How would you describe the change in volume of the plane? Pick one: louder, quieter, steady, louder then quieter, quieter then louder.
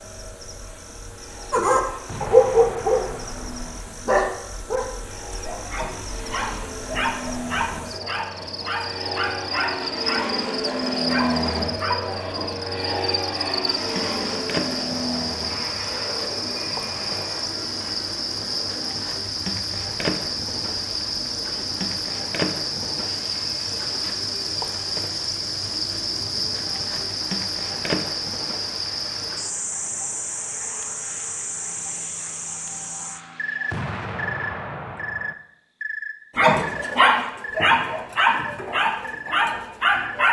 louder then quieter.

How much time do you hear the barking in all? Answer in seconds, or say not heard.
15 s.